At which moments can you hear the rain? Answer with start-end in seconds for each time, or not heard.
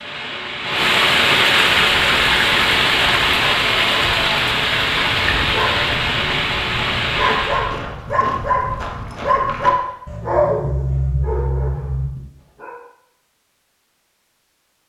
0.0-7.8.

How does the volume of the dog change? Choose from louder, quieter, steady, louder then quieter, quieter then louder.
louder.